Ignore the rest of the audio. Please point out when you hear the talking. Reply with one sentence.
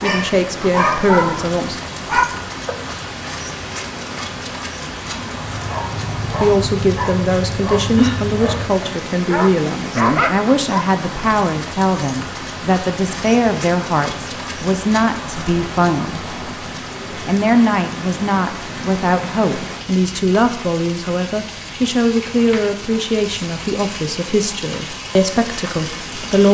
You can hear the talking from 0.0 to 1.8 s, from 6.4 to 16.4 s and from 17.1 to 26.4 s.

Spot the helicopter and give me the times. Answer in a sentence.
The helicopter can't be heard in this clip.